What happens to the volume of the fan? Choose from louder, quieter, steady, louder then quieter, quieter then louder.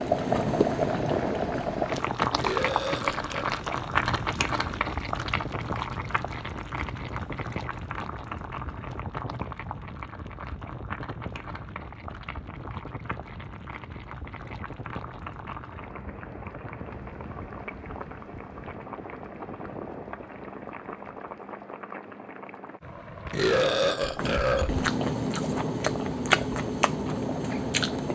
quieter.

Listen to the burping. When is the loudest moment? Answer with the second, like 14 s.
24 s.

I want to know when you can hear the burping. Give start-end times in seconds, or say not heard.
2.4-3.5, 23.3-24.9.